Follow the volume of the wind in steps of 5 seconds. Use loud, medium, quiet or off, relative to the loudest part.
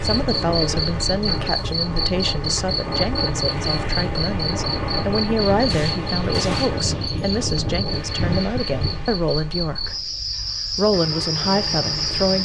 loud, loud, off.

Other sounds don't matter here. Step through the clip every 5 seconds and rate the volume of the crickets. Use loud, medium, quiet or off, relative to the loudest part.
loud, medium, loud.